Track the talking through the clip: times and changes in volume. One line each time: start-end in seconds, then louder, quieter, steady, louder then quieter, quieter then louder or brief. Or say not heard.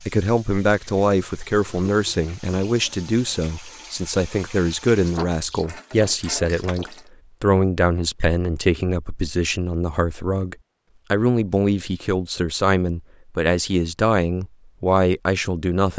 0.0-15.9 steady.